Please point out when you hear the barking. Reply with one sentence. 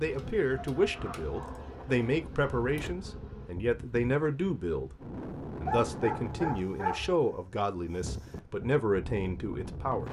The barking can be heard from 0.1 to 3.0 s and from 5.7 to 7.2 s.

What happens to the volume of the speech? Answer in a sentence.
The loudness of the speech stays about the same.